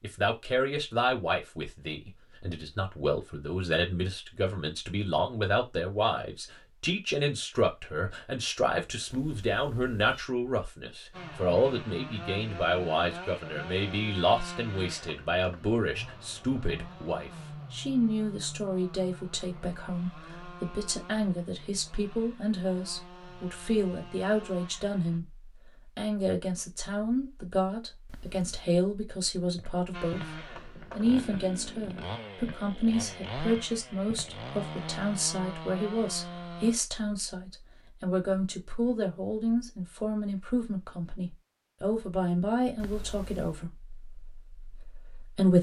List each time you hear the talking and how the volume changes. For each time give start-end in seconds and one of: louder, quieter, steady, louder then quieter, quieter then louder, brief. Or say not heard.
0.0-45.5 steady.